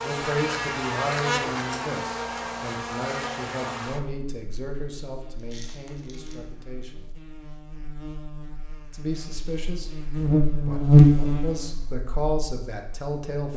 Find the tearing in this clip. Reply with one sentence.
The tearing can be heard from 5.3 to 6.3 s.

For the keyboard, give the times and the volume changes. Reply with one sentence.
You can't hear the keyboard here.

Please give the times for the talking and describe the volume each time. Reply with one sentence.
You can hear the talking from 0.0 to 7.0 s, getting quieter; briefly from 8.9 to 9.9 s; and briefly from 10.7 to 13.5 s.